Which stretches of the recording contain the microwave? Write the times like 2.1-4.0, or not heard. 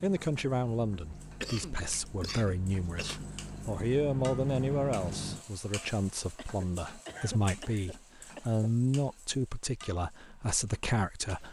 0.2-5.5.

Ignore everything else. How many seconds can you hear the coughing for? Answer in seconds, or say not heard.
4 s.